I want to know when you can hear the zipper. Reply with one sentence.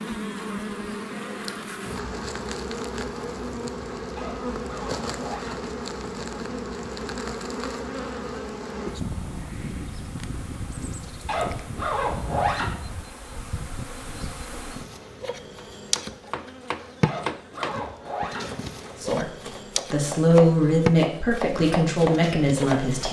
You can hear the zipper from 4.2 to 5.7 s, from 11.2 to 12.8 s and from 17.0 to 18.5 s.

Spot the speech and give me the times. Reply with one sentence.
The speech can be heard from 19.0 to 23.0 s.